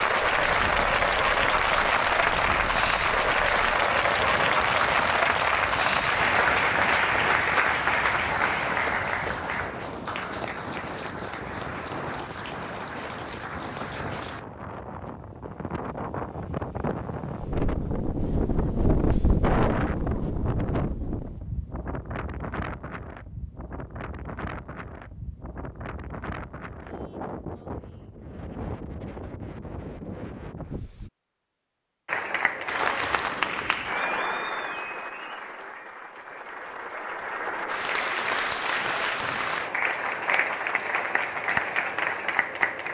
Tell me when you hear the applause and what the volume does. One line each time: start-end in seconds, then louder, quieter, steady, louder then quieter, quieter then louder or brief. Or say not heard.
0.0-14.4 quieter
32.0-42.8 quieter then louder.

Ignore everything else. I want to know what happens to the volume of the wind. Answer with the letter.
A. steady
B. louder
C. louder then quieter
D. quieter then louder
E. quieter
C.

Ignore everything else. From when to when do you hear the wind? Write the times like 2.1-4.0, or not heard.
0.0-31.1.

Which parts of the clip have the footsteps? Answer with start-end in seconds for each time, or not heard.
not heard.